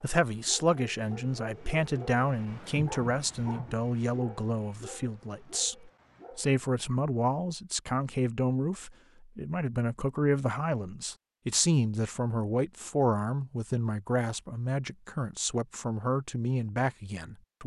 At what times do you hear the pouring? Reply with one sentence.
You can't hear the pouring here.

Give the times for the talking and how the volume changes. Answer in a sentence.
The talking can be heard from 0.0 to 17.6 s, at a steady volume.